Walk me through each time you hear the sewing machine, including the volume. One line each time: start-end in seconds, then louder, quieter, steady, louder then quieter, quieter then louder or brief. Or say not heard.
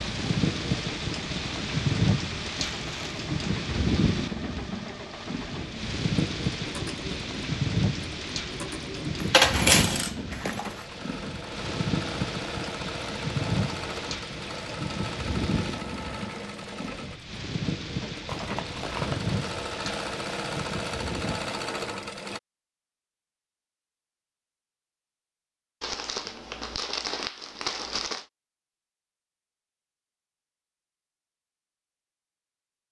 0.0-22.4 louder.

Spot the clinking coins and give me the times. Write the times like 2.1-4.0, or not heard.
9.2-10.8.